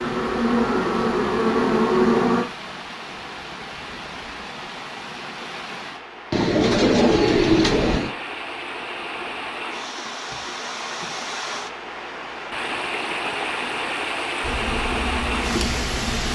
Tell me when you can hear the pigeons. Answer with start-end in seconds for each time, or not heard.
6.3-8.2.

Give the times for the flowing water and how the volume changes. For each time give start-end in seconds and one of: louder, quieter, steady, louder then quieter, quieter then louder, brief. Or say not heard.
0.0-16.3 louder.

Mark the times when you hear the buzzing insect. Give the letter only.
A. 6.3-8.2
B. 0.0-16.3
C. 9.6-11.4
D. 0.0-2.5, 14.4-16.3
D.